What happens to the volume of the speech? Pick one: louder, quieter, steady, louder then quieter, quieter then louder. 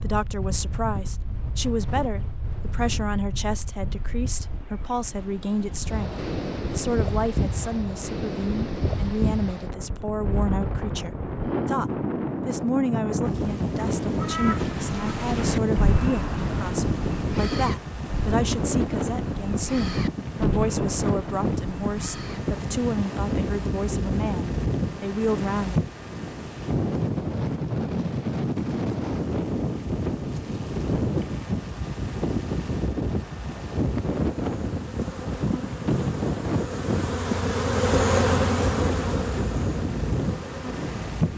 steady.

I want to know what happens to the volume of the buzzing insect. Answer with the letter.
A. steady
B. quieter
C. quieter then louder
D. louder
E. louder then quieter
E.